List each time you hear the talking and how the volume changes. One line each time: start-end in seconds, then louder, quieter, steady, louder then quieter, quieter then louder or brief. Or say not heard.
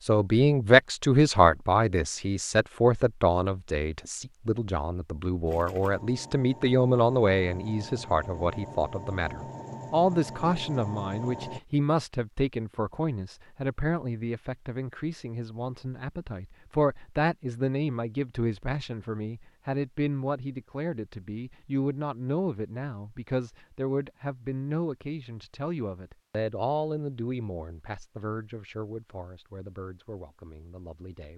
0.0-31.3 quieter.